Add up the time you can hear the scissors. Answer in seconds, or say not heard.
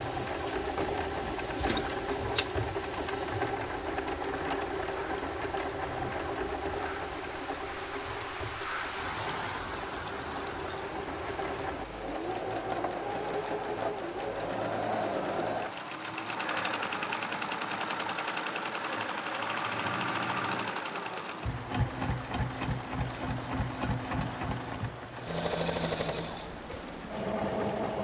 2 s.